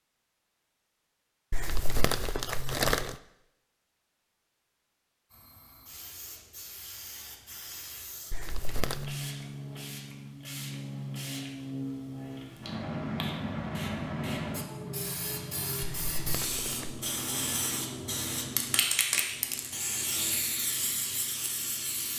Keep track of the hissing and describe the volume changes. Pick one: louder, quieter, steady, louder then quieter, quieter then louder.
louder.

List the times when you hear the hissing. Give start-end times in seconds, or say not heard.
5.3-22.1.